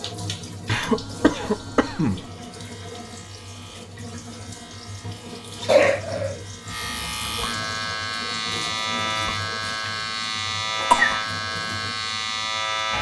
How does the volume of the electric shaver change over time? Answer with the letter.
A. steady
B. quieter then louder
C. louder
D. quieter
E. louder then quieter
C.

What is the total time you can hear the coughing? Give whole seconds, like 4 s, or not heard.
3 s.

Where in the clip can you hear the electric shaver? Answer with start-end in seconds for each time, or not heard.
0.0-12.9.